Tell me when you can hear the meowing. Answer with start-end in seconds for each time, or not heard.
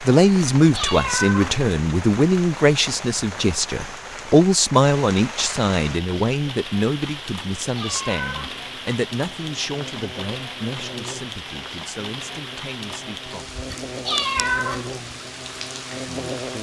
0.6-1.6, 7.6-8.7, 13.7-14.9.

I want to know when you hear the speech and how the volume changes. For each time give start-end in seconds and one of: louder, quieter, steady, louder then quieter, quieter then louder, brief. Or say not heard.
0.0-13.6 quieter
16.1-16.5 brief.